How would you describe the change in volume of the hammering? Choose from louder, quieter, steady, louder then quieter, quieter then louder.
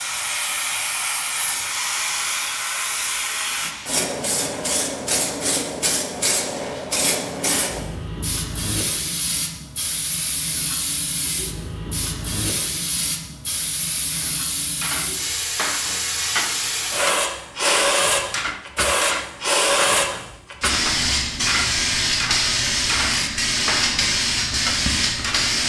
steady.